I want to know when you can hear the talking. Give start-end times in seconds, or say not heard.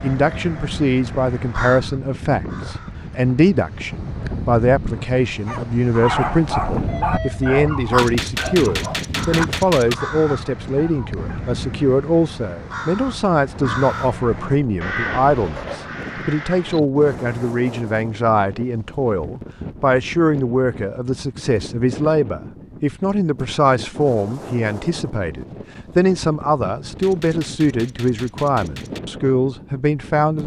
0.0-30.4.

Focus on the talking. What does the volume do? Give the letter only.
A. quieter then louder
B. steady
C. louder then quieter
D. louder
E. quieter
B.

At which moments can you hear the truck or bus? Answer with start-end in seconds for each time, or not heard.
not heard.